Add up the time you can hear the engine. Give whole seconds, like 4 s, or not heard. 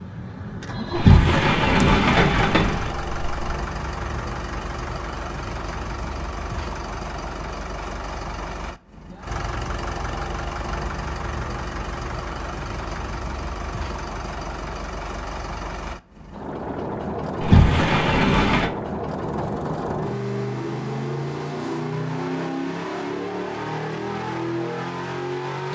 26 s.